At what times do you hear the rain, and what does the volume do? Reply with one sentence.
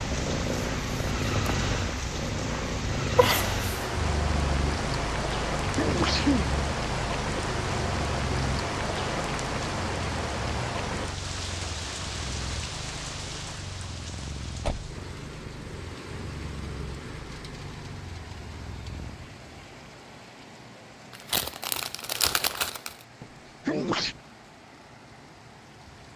The rain can be heard from 0.0 to 26.1 s, getting quieter.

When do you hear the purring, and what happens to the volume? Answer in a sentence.
You can hear the purring from 0.0 to 19.3 s, getting quieter.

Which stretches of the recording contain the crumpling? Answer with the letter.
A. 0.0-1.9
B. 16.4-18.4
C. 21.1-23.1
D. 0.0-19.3
C.